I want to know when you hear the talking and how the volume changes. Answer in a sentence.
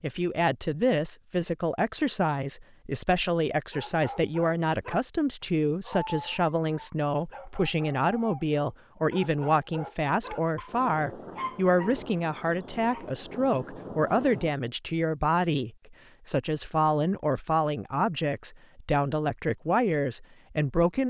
You can hear the talking from 0.0 to 21.0 s, at a steady volume.